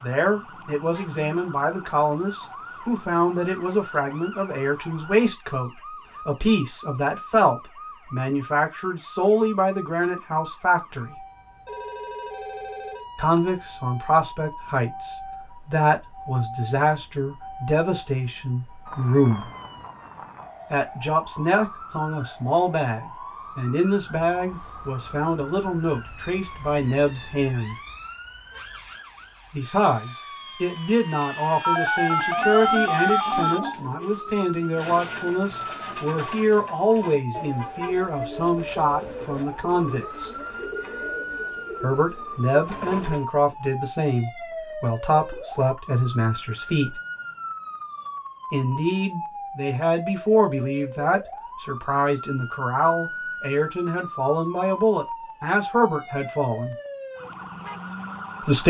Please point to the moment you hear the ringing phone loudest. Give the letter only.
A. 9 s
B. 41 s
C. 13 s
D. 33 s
D.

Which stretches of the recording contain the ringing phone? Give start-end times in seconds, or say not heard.
11.7-13.4, 31.6-33.8, 39.9-41.1.